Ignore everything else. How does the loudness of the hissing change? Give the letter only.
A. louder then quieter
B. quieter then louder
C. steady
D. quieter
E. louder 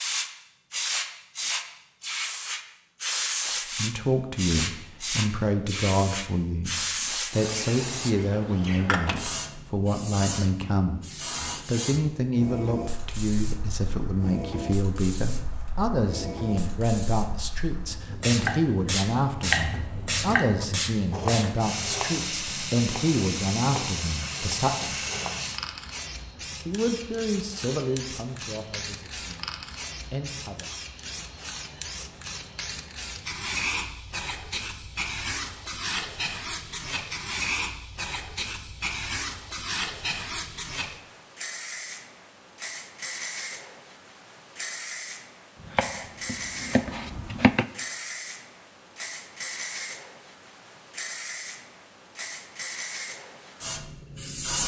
D.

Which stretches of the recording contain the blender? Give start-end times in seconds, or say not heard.
not heard.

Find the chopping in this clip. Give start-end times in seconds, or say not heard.
18.4-25.4, 45.6-47.6.